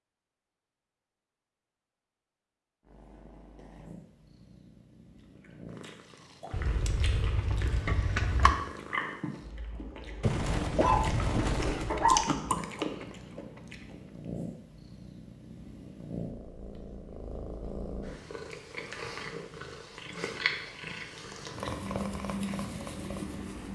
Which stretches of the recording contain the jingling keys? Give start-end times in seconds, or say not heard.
6.5-8.6.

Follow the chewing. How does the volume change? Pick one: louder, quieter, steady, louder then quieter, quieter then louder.
louder.